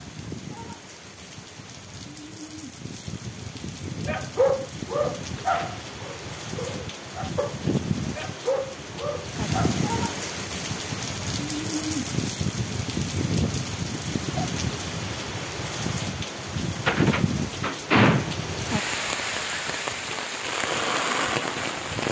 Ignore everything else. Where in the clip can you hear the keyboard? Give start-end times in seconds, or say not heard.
not heard.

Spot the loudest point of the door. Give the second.
18 s.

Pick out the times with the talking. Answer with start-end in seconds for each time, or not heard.
not heard.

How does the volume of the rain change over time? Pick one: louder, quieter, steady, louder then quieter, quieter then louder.
louder.